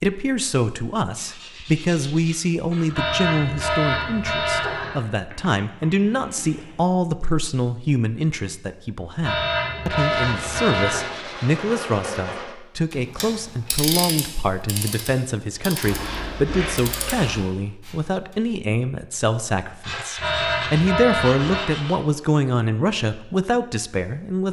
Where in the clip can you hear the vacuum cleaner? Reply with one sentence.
You can't hear the vacuum cleaner here.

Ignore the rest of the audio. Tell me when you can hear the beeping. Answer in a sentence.
You can hear the beeping from 2.9 to 5.0 s, from 9.2 to 11.2 s and from 20.1 to 21.7 s.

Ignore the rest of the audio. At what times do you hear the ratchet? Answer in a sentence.
You can hear the ratchet from 12.9 to 18.4 s.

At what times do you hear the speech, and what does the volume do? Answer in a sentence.
The speech can be heard from 0.0 to 24.4 s, at a steady volume.